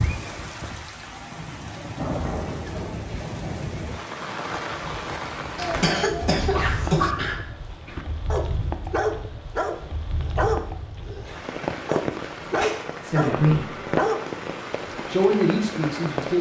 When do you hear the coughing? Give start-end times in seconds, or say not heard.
5.5-7.2.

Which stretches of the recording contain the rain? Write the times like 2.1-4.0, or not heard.
0.0-16.3.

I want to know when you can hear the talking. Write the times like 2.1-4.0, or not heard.
13.0-13.7, 15.1-16.3.